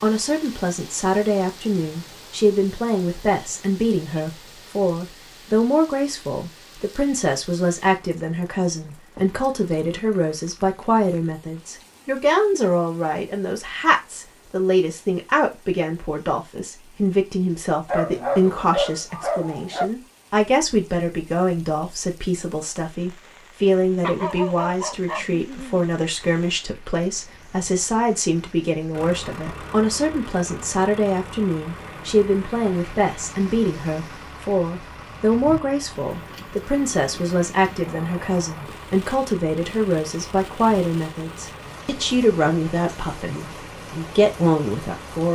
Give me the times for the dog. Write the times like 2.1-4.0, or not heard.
17.9-19.9, 24.0-25.9.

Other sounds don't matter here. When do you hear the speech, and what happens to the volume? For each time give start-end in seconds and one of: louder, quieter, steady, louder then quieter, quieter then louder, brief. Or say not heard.
0.0-45.2 steady.